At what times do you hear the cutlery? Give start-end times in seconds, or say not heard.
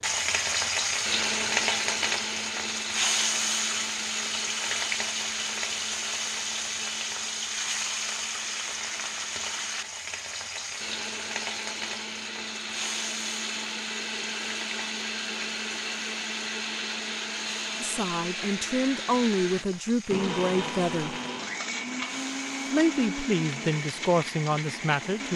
not heard.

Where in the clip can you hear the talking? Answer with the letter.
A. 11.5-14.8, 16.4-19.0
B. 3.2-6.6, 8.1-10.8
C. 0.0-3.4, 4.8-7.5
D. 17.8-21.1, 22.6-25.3
D.